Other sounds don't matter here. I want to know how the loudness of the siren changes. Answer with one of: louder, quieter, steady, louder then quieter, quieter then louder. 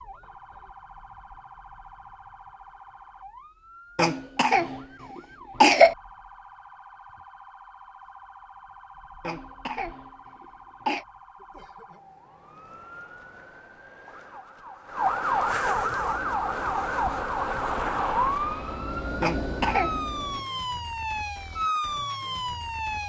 louder.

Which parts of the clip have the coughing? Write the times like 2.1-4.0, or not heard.
4.0-6.0, 9.2-11.1, 19.2-20.1.